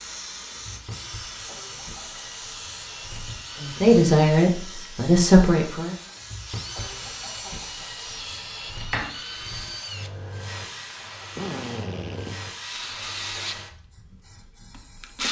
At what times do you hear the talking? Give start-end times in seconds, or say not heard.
3.6-6.0.